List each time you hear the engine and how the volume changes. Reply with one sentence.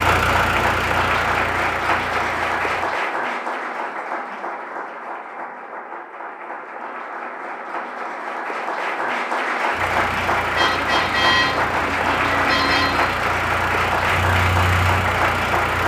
You can hear the engine briefly from 0.0 to 2.9 s; and from 9.7 to 15.8 s, getting louder.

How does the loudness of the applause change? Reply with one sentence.
The loudness of the applause goes down, then up.